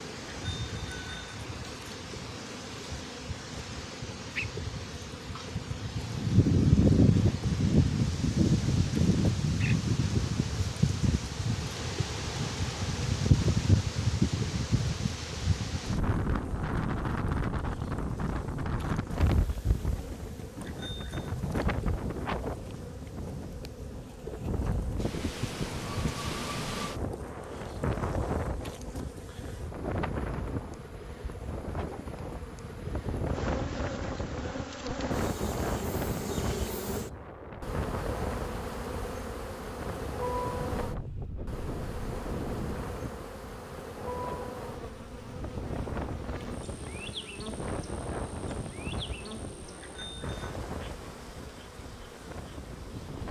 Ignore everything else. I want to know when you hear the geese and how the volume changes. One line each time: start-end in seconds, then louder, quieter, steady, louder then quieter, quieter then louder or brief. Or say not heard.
not heard.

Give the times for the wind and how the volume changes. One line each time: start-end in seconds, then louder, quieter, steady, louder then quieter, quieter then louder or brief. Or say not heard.
0.0-53.2 quieter.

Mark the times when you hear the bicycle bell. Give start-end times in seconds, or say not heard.
0.5-1.4, 20.6-21.4, 49.8-50.5.